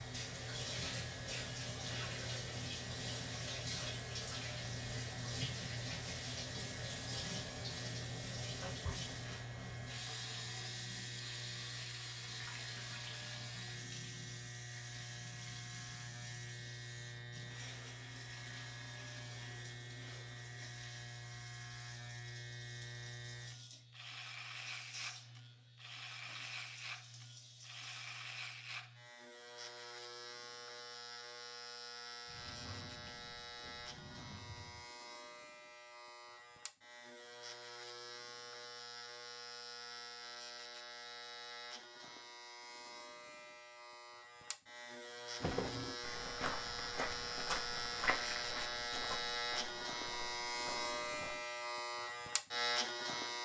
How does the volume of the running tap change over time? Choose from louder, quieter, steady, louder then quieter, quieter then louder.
quieter.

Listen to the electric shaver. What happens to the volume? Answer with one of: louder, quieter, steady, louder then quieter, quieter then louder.
louder.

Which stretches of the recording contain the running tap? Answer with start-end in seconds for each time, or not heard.
0.0-28.1.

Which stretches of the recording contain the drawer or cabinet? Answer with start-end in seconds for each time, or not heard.
32.2-34.9.